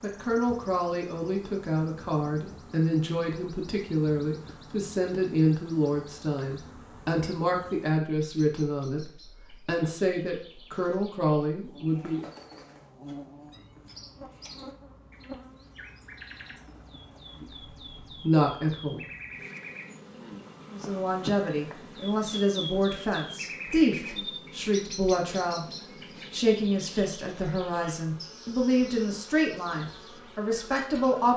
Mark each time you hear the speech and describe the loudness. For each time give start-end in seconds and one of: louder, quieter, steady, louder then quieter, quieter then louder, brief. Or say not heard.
0.0-12.2 steady
17.4-19.1 brief
20.7-31.3 steady.